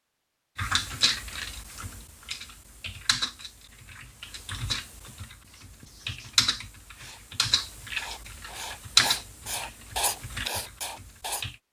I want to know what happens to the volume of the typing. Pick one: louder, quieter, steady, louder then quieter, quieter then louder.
louder then quieter.